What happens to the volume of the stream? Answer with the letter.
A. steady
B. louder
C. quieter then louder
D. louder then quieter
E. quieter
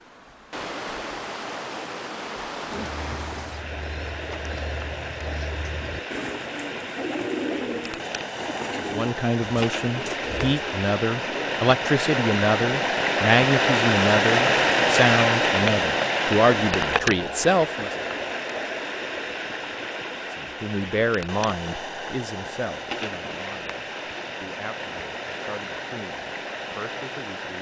D.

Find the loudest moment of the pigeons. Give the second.
7 s.